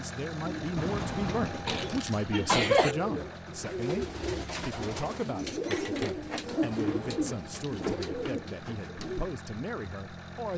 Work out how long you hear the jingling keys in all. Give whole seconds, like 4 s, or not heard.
3 s.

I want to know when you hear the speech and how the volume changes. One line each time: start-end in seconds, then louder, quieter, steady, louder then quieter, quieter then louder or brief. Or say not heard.
0.0-10.5 quieter.